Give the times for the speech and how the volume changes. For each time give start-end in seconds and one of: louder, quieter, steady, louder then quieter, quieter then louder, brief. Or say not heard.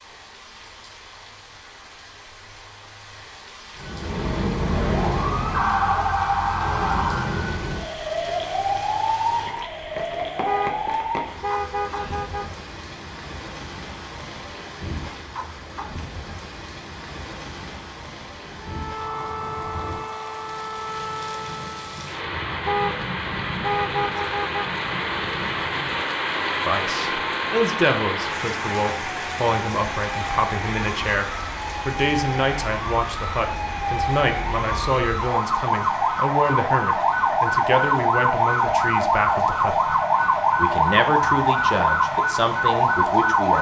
26.6-40.0 steady
40.5-43.5 brief.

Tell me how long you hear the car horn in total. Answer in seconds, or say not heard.
4 s.